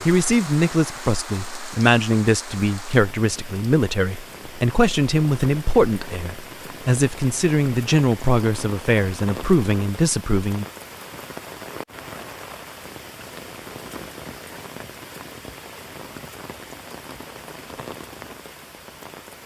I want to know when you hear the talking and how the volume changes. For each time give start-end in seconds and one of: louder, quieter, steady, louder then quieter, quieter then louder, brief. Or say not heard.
0.1-10.7 steady.